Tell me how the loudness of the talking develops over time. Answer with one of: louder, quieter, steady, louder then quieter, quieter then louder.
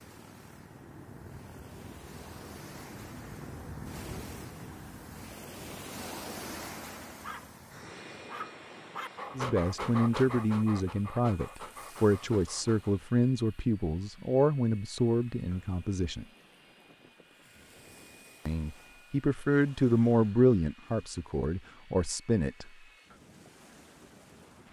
steady.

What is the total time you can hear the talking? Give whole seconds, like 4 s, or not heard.
11 s.